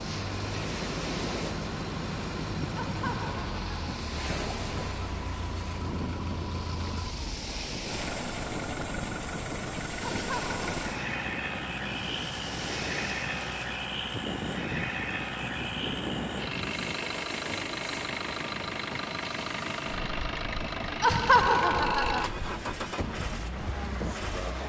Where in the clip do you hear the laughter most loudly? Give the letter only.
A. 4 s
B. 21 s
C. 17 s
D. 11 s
B.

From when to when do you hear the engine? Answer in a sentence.
You can hear the engine from 0.0 to 24.6 s.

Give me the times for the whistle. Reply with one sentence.
The whistle can't be heard in this clip.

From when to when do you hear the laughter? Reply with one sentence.
The laughter can be heard from 2.8 to 4.0 s, from 10.2 to 11.1 s and from 21.0 to 22.3 s.